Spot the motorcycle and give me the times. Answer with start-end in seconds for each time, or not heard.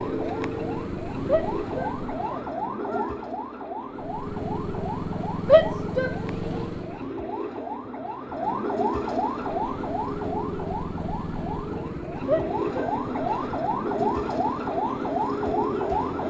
0.0-2.4, 3.9-7.2, 9.3-16.2.